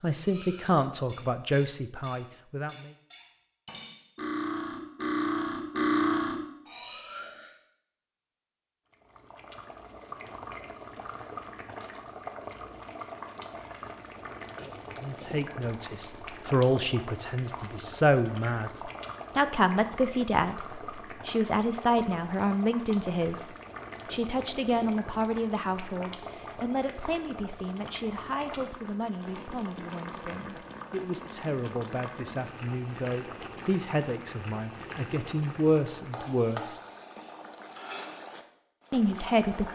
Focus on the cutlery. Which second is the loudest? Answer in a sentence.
The volume of the cutlery peaks at 6 seconds.